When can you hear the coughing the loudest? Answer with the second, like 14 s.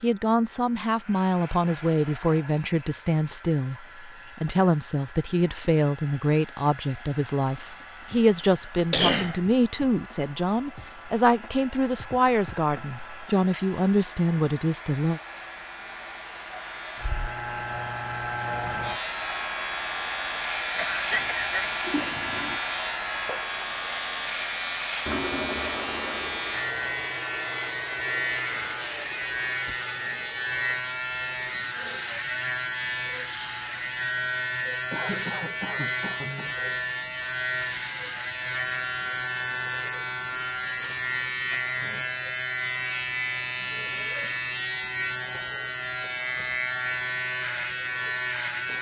9 s.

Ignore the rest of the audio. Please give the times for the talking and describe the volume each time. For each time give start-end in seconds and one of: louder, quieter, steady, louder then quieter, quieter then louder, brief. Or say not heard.
0.0-15.2 steady.